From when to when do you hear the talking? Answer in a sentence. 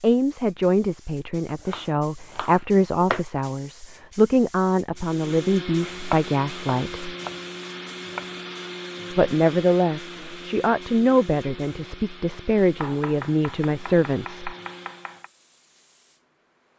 The talking can be heard from 0.0 to 7.2 s and from 9.1 to 14.6 s.